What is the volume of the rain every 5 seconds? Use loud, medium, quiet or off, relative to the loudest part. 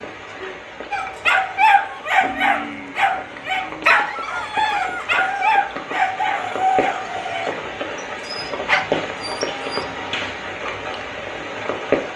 medium, loud, loud.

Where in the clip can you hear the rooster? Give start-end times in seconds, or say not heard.
4.2-7.6.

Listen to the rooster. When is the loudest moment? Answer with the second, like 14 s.
7 s.